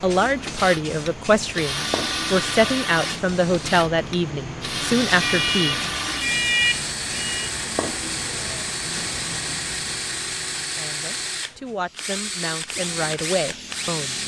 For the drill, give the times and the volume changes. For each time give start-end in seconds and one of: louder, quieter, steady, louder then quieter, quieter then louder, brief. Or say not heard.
0.2-14.2 steady.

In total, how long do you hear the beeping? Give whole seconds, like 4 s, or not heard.
2 s.